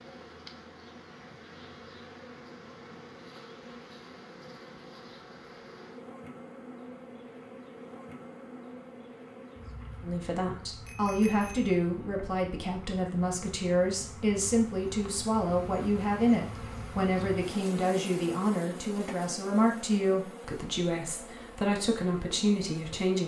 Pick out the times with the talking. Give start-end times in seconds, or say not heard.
10.0-23.2.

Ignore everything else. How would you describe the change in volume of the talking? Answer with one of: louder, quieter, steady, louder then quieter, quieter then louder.
steady.